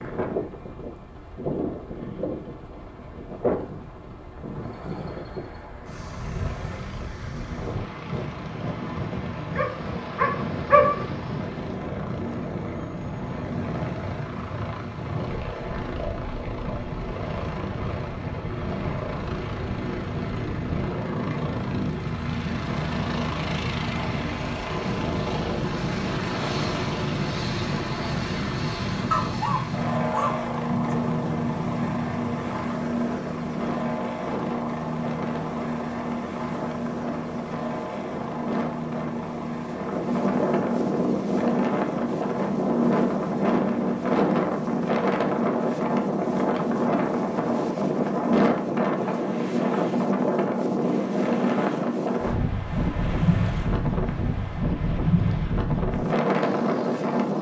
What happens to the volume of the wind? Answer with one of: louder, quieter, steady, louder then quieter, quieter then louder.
louder.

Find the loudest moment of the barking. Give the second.
11 s.